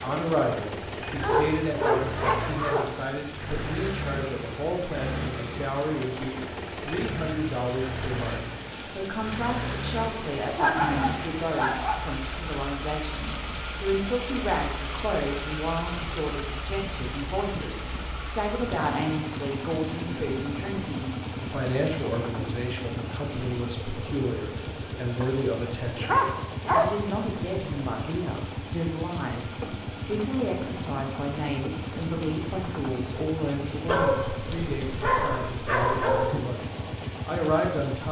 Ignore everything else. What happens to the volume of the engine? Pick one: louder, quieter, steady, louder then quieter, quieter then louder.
steady.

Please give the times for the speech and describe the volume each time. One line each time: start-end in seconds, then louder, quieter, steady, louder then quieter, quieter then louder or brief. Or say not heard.
0.0-38.0 steady.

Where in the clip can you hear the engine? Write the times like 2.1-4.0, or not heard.
0.0-38.0.